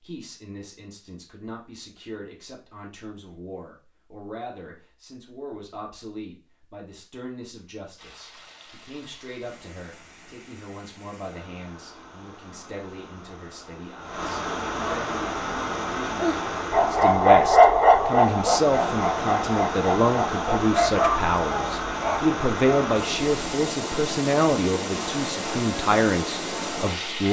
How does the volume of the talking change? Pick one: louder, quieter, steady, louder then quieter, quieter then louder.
louder.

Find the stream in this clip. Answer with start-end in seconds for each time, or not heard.
8.0-27.2.